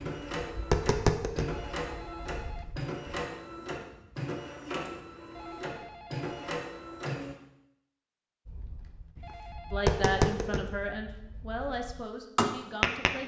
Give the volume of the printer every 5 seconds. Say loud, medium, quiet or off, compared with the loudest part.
loud, loud, off.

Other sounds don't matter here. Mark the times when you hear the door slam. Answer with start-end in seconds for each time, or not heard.
not heard.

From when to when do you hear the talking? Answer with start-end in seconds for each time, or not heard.
9.7-13.2.